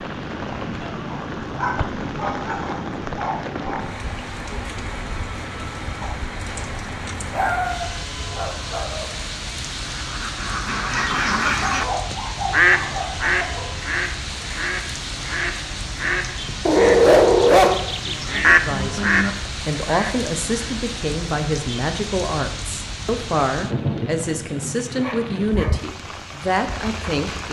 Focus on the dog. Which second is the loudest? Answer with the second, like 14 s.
17 s.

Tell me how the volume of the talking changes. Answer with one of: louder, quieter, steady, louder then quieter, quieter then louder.
steady.